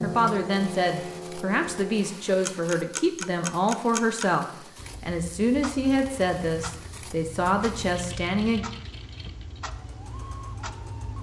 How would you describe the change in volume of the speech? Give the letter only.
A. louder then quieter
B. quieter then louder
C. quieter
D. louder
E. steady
E.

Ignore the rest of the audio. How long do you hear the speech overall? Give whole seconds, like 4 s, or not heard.
9 s.